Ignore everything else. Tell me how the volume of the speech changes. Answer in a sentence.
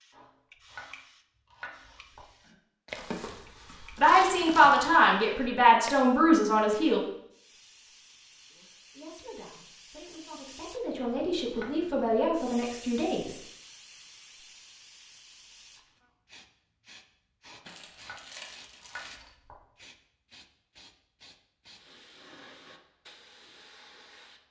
The loudness of the speech goes down, then up.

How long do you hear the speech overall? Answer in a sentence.
The speech can be heard for 8 seconds in total.